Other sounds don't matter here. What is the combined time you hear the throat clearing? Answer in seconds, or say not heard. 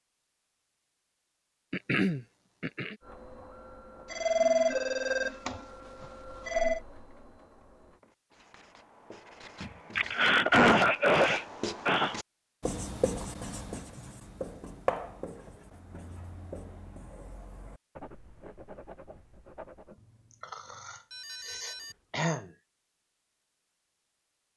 6 s.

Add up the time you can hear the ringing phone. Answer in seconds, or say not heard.
4 s.